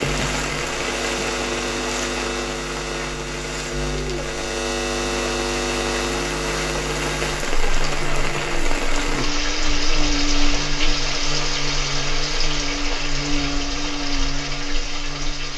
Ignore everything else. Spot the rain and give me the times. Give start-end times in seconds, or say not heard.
0.0-15.5.